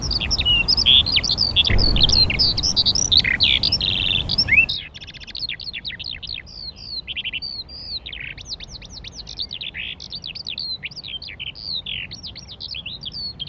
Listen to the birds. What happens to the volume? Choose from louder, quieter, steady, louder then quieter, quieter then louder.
quieter.